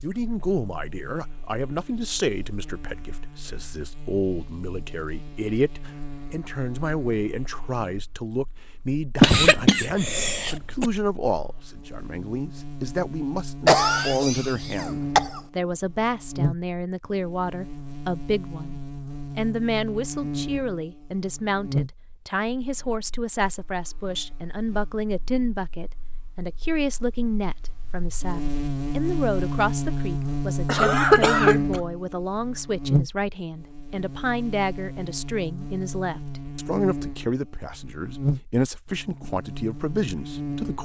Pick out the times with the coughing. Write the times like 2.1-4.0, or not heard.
9.2-10.8, 13.7-15.4, 30.6-31.8.